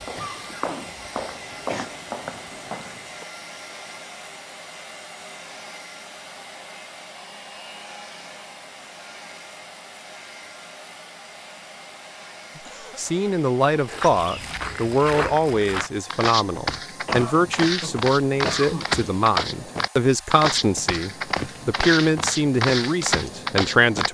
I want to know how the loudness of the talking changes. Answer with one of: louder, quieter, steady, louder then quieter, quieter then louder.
steady.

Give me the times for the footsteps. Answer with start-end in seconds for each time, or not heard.
0.0-3.2, 13.8-24.1.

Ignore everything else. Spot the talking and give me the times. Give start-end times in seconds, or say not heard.
12.9-24.1.